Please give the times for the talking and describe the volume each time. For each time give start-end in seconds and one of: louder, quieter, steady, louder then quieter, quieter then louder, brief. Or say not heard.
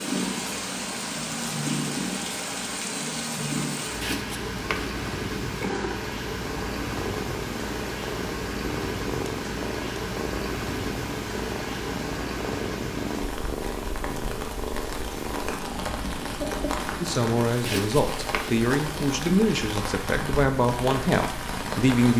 17.0-22.1 steady.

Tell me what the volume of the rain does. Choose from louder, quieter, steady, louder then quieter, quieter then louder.
steady.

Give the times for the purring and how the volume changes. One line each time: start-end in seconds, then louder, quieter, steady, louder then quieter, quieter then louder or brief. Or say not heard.
0.0-21.9 steady.